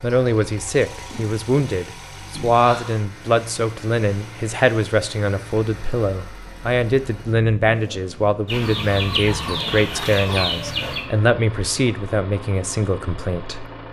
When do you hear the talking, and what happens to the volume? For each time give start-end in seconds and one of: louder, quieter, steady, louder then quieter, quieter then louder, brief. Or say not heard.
0.0-13.7 steady.